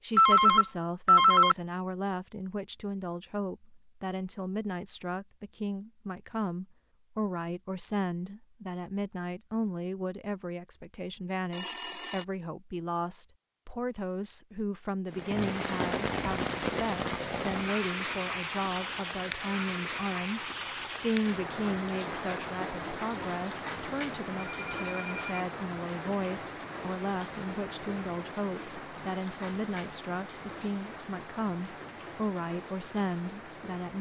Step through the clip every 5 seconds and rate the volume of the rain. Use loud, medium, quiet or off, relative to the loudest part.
off, off, off, loud, loud, medium, medium.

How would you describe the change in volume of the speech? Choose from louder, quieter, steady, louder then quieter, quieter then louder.
steady.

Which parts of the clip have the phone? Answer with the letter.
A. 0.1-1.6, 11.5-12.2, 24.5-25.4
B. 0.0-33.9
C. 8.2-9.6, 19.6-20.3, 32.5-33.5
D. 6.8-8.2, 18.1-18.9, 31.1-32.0
A.